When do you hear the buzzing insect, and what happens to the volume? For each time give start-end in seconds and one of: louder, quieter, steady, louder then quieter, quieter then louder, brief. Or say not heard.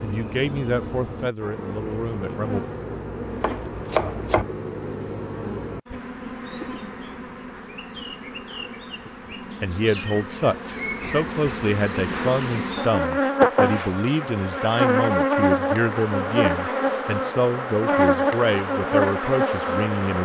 0.0-20.1 louder.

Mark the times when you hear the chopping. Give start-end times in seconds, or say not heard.
3.4-4.5.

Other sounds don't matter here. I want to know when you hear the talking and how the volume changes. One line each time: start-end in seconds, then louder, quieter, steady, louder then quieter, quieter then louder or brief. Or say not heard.
0.0-2.6 brief
9.3-20.1 steady.